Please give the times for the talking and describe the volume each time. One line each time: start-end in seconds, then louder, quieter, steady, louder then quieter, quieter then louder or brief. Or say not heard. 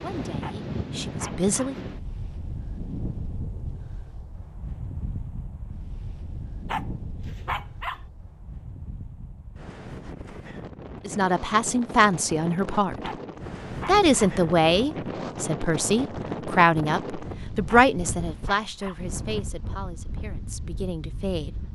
0.0-1.8 brief
11.1-13.1 brief
13.8-21.6 quieter.